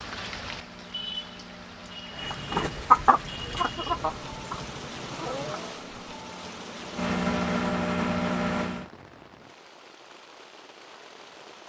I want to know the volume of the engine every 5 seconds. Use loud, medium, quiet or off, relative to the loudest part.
quiet, loud, off.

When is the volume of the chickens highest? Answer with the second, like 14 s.
3 s.